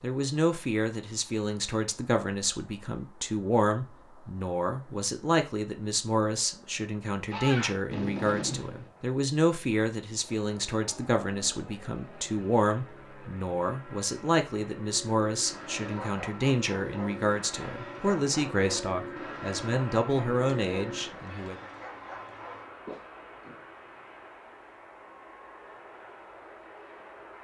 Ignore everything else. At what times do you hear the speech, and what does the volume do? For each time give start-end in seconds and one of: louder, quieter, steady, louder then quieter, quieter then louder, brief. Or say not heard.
0.0-21.6 steady.